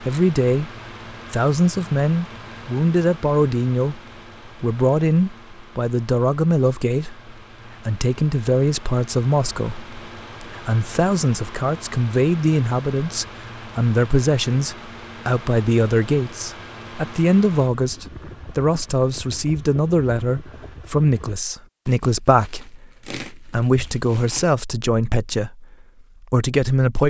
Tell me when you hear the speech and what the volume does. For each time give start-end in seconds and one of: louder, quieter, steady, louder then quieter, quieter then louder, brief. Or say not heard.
0.0-0.7 brief
1.3-27.0 steady.